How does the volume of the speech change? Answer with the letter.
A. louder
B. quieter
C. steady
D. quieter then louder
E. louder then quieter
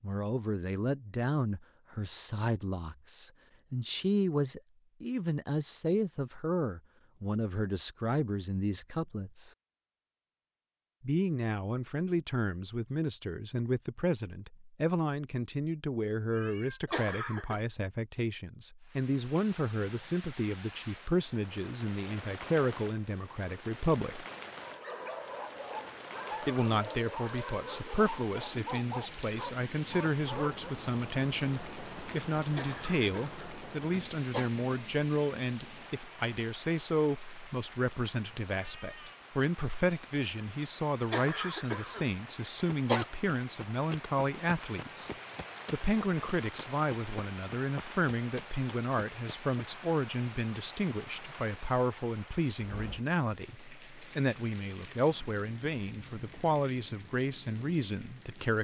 C.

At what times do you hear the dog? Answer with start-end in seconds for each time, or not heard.
24.6-30.6.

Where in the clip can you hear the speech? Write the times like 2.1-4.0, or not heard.
0.0-9.6, 11.0-24.2, 26.4-45.1, 45.7-58.5.